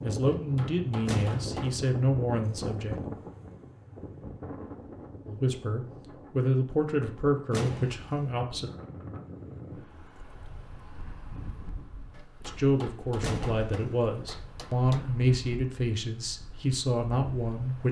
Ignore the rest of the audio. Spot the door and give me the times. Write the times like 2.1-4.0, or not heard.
1.1-1.6, 7.5-8.3, 13.2-14.0.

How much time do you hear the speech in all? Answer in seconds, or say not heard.
12 s.